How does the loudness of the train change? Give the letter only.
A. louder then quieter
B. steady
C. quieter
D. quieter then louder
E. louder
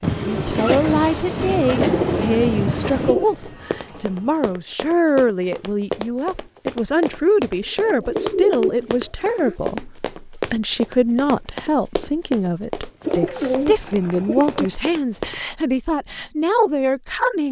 C.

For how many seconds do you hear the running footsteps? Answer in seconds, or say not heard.
12 s.